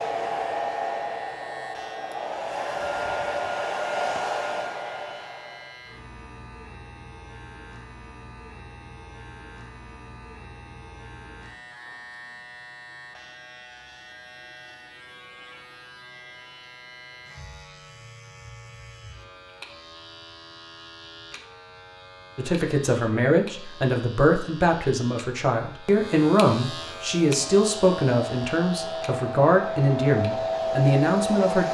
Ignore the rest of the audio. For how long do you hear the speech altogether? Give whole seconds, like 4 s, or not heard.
9 s.